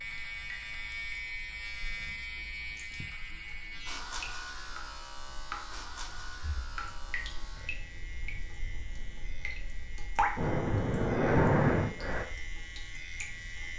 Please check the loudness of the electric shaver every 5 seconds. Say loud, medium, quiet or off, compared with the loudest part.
loud, medium, medium.